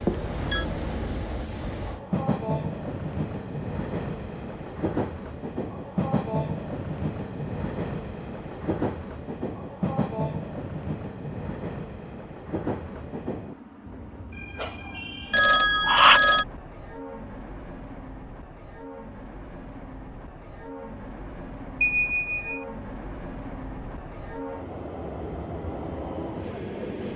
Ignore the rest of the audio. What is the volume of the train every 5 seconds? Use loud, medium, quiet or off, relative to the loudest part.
loud, loud, loud, medium, medium, loud.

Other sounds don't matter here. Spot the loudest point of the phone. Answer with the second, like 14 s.
16 s.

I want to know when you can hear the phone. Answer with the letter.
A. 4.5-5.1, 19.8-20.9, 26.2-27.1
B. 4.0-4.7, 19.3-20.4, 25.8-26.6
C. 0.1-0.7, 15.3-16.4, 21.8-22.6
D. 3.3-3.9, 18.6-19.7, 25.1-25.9
C.